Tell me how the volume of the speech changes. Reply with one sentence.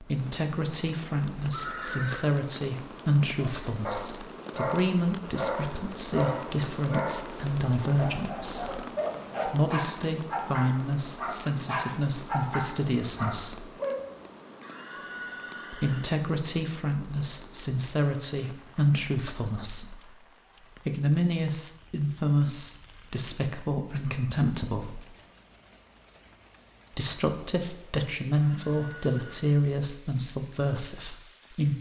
The volume of the speech stays about the same.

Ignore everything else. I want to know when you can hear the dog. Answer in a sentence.
The dog can be heard from 3.4 to 14.1 s.